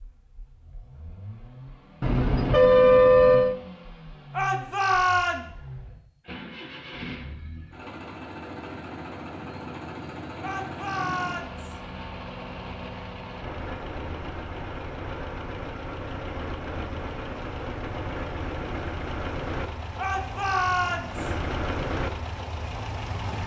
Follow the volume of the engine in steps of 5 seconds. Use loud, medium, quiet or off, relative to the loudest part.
medium, medium, loud, loud, loud.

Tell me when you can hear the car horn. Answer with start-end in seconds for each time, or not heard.
2.0-3.5.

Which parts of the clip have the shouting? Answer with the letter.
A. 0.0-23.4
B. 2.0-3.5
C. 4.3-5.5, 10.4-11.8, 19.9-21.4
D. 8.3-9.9
C.